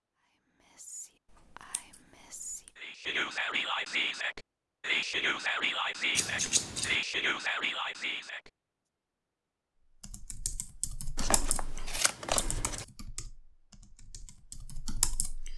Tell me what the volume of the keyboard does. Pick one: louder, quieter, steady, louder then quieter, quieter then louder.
quieter then louder.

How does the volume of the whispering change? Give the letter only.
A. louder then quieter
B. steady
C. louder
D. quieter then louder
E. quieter
C.